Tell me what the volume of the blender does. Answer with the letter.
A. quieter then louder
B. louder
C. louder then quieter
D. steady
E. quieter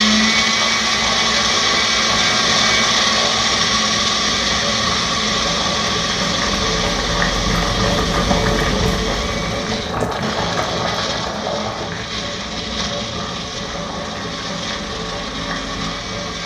E.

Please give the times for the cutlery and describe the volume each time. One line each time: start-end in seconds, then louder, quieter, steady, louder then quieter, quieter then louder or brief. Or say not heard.
not heard.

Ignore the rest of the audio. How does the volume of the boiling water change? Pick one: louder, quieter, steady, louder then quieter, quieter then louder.
louder then quieter.